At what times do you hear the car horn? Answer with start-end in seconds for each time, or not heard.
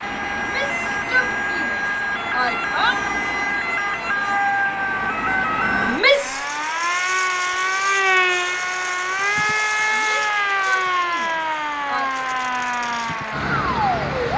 not heard.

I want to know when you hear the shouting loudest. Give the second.
6 s.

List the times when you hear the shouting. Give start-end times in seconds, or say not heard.
0.3-3.0, 5.8-6.5, 9.9-12.1.